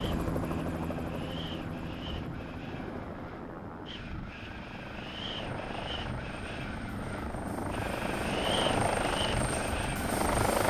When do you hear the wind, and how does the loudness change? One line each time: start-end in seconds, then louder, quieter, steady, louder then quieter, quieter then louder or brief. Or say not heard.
0.0-10.6 louder.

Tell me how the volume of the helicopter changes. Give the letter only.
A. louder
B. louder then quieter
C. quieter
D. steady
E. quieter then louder
E.